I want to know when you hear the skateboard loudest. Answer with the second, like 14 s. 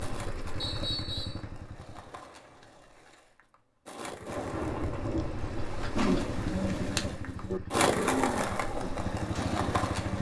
8 s.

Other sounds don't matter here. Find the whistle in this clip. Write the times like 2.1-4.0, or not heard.
0.6-1.4.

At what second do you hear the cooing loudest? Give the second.
6 s.